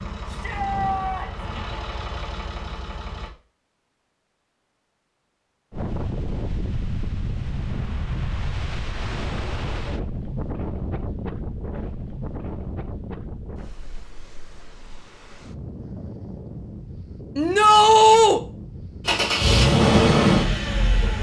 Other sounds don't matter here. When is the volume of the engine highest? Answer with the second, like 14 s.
20 s.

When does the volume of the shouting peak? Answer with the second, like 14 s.
18 s.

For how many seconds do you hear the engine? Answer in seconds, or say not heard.
5 s.